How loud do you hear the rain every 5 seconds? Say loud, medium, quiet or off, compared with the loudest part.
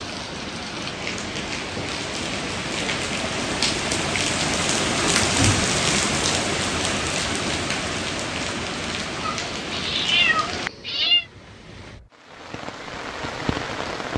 loud, loud, medium.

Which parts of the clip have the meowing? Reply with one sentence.
You can hear the meowing from 9.2 to 11.2 s.